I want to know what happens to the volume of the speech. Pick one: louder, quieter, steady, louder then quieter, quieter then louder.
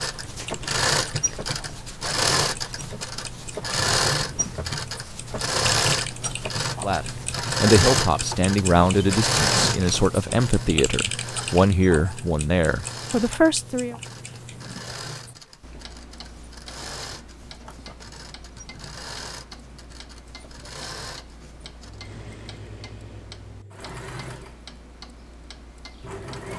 steady.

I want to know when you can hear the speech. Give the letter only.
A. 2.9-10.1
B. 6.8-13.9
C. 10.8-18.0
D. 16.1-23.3
B.